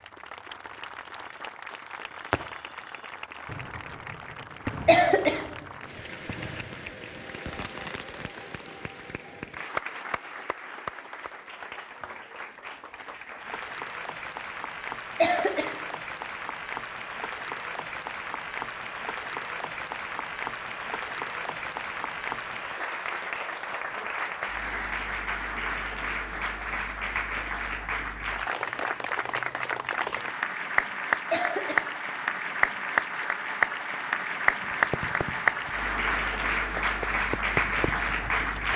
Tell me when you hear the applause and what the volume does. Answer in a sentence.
The applause can be heard from 0.0 to 38.7 s, getting louder.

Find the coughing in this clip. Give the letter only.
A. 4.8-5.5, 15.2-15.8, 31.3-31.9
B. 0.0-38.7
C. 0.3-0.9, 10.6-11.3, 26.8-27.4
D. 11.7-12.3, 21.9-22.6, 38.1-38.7
A.